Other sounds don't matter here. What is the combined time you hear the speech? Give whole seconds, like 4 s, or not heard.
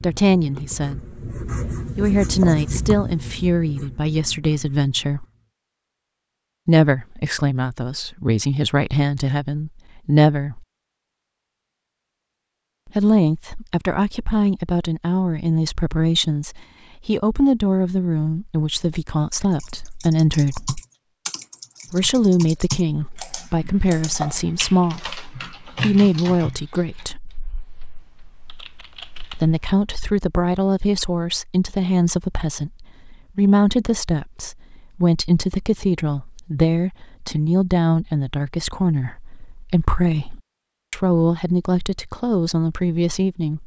37 s.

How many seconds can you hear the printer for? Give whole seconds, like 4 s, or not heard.
not heard.